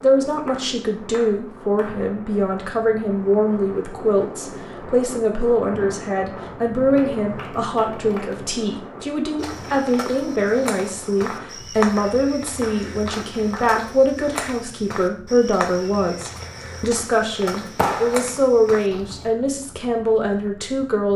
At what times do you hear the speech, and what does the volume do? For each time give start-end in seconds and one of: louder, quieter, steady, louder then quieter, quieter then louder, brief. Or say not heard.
0.0-21.1 steady.